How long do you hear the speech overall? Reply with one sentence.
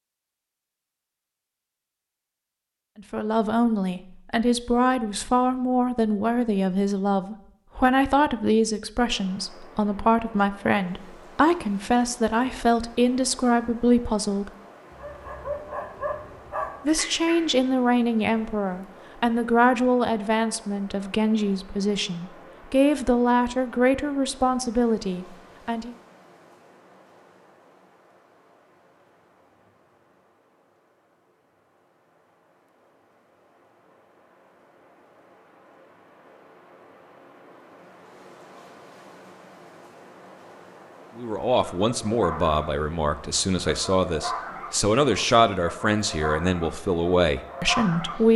You can hear the speech for 28 seconds altogether.